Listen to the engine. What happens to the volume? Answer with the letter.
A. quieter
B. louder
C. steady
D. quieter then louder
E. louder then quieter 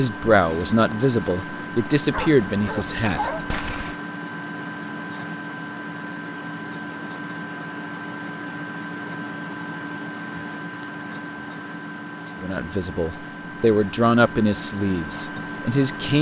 C.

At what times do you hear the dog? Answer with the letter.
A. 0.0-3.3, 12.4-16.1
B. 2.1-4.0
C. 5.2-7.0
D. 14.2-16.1
B.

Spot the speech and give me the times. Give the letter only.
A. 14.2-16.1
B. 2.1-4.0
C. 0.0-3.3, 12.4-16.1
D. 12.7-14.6
C.